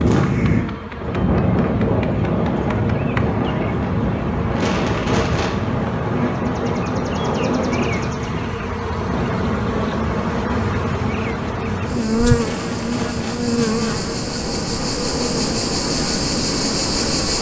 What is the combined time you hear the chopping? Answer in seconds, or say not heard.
not heard.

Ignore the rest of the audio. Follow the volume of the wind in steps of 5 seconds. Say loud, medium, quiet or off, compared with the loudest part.
loud, loud, medium, medium.